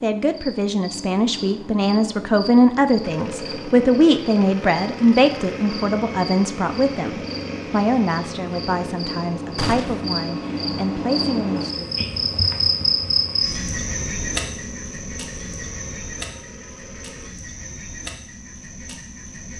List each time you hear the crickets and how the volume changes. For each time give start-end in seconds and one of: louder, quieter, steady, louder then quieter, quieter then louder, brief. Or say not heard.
0.0-19.5 louder then quieter.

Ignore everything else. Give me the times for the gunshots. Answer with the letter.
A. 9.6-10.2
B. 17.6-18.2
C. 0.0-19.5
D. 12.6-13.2
A.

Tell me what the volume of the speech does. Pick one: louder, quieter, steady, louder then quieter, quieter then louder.
quieter.